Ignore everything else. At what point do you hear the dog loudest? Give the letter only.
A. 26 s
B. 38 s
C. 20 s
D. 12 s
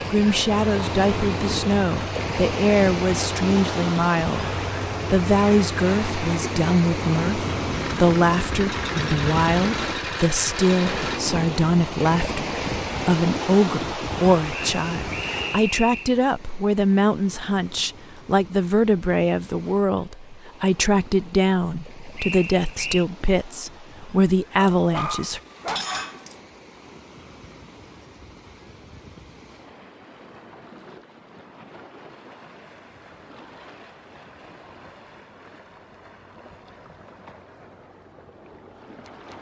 A.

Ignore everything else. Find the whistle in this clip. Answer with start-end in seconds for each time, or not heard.
14.5-16.1, 22.1-23.1.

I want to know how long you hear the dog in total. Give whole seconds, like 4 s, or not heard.
2 s.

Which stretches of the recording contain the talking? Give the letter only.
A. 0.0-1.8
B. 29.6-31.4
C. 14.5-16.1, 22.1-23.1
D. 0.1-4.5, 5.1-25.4
D.